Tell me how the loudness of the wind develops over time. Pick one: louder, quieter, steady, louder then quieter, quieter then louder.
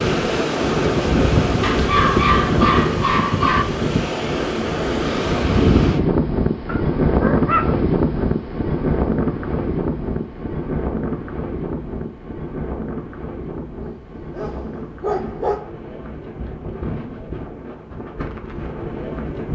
quieter.